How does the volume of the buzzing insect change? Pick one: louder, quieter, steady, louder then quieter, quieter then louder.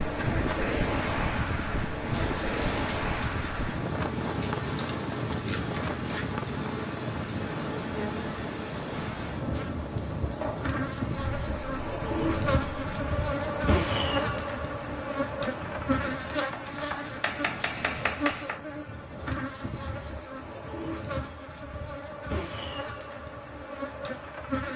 louder then quieter.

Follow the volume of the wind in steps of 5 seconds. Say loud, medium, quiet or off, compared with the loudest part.
loud, loud, medium, quiet, off.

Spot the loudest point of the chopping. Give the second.
18 s.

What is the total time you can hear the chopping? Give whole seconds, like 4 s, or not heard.
2 s.